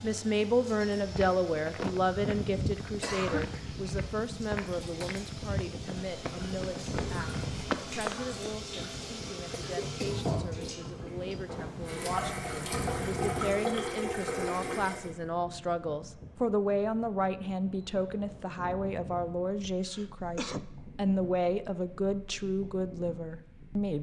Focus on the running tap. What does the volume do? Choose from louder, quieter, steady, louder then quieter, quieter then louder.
louder.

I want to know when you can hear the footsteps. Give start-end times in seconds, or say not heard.
0.8-8.3.